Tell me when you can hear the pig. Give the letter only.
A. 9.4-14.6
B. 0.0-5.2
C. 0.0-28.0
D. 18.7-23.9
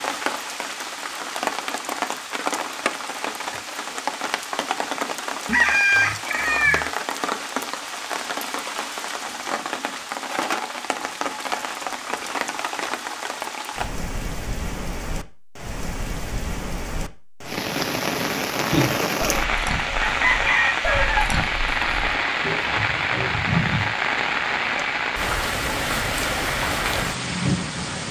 D.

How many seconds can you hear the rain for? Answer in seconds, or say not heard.
28 s.